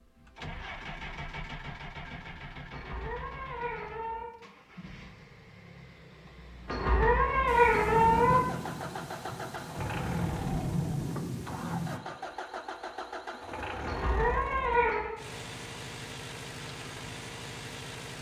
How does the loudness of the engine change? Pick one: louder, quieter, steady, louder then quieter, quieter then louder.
quieter then louder.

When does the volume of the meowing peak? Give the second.
8 s.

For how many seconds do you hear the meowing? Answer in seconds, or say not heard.
5 s.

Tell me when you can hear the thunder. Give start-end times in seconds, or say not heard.
7.5-12.0.